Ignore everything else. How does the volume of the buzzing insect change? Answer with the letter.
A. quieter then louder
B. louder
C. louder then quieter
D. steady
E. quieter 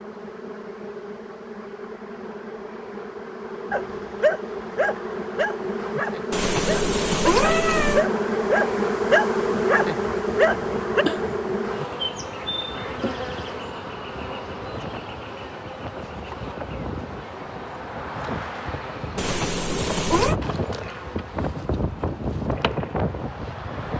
C.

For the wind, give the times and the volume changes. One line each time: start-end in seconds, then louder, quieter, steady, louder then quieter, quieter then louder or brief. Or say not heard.
10.2-23.9 louder.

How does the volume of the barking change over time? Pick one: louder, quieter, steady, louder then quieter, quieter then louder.
quieter then louder.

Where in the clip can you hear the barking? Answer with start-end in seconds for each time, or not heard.
3.7-11.3.